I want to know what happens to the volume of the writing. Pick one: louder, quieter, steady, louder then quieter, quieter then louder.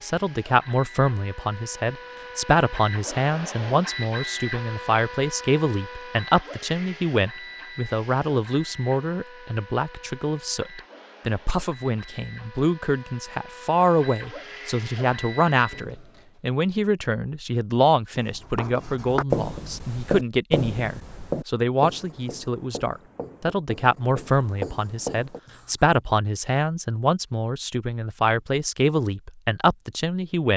quieter then louder.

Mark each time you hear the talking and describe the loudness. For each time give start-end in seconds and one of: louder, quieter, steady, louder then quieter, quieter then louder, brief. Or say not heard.
0.0-30.5 steady.